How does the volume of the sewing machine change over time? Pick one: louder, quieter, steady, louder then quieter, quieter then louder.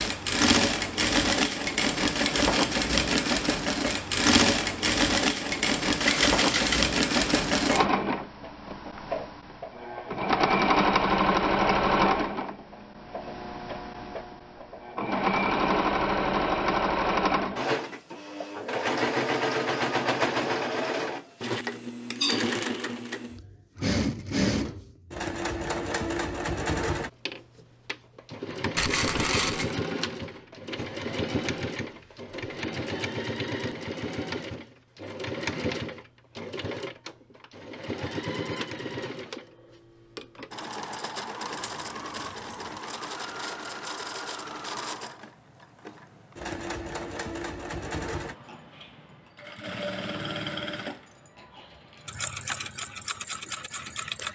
quieter.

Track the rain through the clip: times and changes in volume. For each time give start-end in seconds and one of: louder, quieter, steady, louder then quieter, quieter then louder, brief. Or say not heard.
not heard.